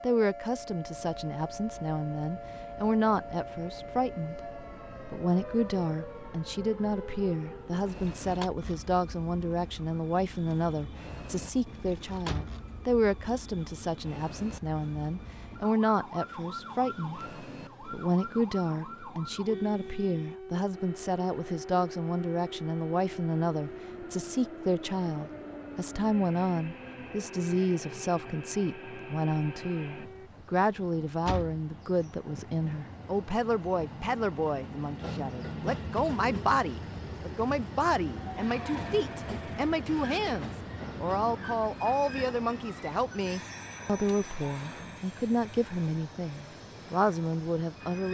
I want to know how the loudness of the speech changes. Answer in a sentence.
The loudness of the speech stays about the same.